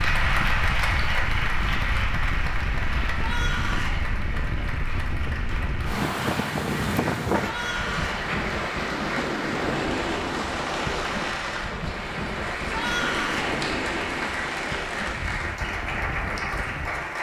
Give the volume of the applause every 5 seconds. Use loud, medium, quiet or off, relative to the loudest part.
loud, medium, loud, loud.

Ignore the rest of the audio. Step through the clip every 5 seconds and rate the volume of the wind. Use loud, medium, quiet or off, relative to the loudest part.
medium, loud, loud, medium.